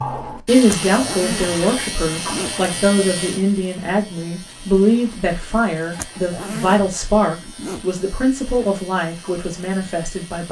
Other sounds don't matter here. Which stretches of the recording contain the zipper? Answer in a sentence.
You can hear the zipper from 0.7 to 2.5 s and from 6.0 to 7.8 s.